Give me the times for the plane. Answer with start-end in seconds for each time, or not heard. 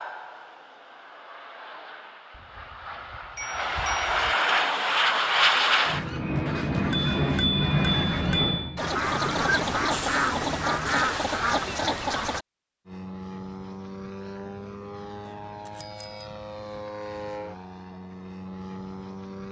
0.0-11.1, 12.8-19.4.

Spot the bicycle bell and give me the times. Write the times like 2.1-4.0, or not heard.
2.3-4.3, 6.9-8.6, 15.2-16.3.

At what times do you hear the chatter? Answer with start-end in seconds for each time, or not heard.
not heard.